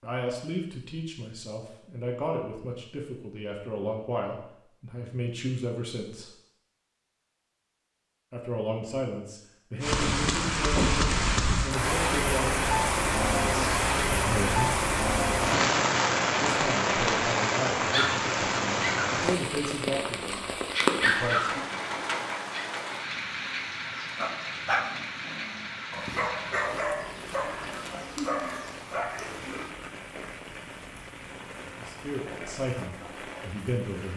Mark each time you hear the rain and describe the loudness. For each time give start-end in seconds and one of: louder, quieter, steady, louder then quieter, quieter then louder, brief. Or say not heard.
9.8-34.1 quieter.